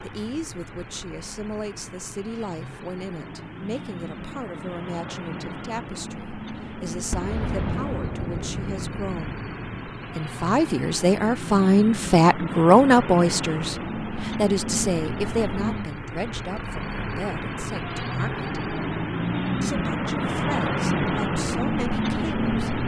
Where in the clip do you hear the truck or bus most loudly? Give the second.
21 s.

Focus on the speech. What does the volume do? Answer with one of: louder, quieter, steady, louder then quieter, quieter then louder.
louder then quieter.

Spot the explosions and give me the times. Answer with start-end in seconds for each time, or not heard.
7.1-9.9.